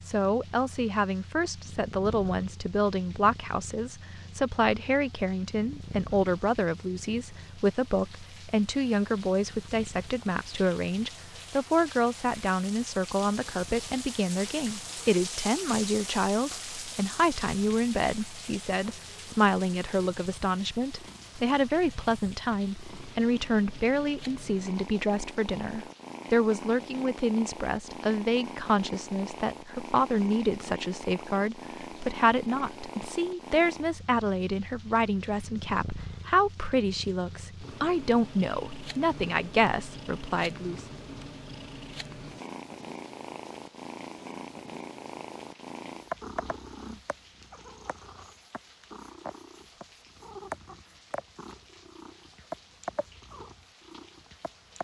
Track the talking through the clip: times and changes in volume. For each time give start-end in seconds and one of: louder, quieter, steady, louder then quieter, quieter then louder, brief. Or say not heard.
0.1-40.9 steady.